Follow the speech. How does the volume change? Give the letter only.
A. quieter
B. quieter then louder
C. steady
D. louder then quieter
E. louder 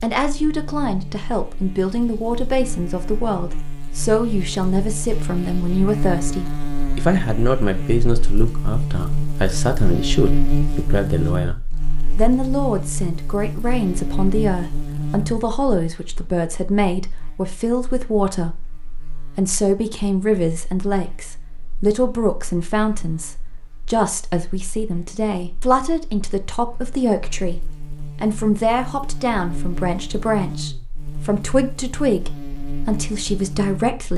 C.